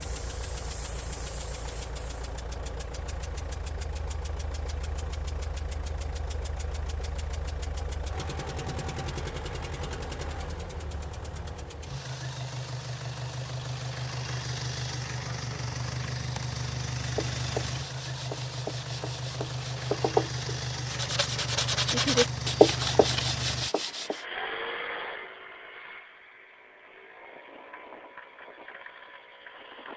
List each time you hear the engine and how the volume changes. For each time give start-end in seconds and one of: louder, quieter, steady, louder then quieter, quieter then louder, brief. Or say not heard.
0.0-29.9 louder then quieter.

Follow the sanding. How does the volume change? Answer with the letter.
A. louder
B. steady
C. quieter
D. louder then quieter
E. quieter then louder
A.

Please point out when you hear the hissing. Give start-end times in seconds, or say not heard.
0.0-2.3.